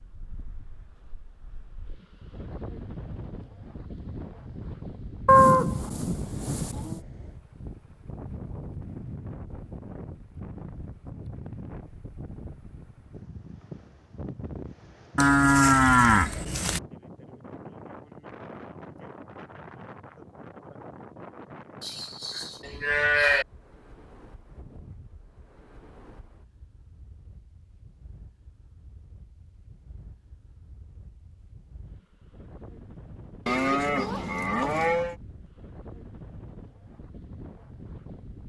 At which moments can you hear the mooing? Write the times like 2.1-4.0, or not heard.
5.2-7.0, 15.2-16.8, 21.8-23.4, 33.5-35.1.